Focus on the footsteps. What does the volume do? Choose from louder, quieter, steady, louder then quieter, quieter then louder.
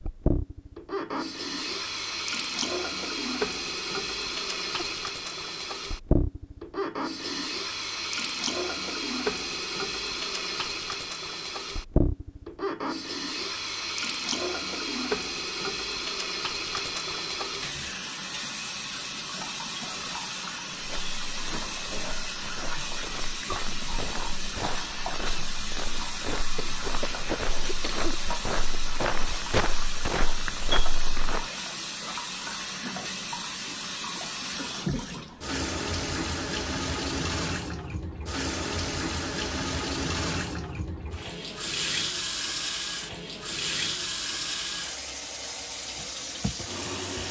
louder.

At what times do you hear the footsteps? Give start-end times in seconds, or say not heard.
20.8-31.4.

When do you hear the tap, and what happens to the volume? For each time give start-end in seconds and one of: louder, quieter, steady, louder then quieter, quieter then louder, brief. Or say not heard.
0.0-47.2 steady.